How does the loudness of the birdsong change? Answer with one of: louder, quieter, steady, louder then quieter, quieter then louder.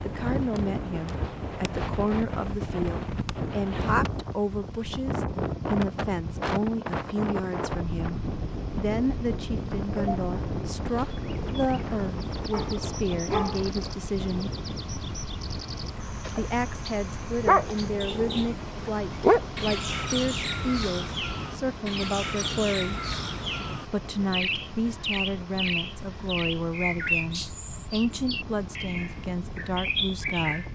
louder.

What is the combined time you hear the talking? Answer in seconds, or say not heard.
28 s.